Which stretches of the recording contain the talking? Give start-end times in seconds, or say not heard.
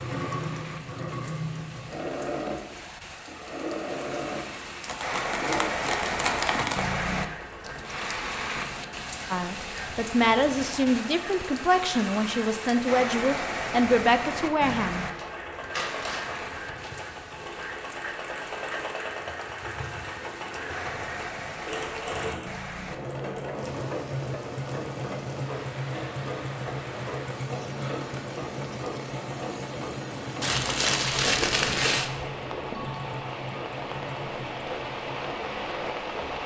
9.3-15.1.